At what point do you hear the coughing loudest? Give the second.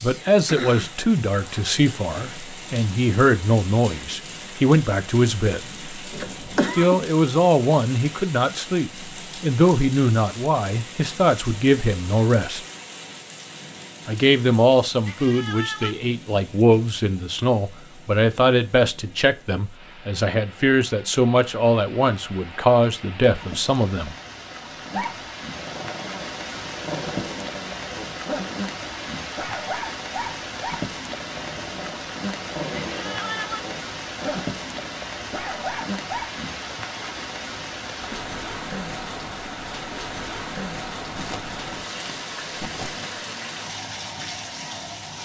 7 s.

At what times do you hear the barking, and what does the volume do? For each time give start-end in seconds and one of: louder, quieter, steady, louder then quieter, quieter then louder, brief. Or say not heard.
24.9-36.3 steady.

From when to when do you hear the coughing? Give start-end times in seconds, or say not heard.
6.1-7.0, 41.1-43.2.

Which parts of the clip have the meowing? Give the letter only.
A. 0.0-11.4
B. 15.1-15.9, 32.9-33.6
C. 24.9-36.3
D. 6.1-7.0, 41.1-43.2
B.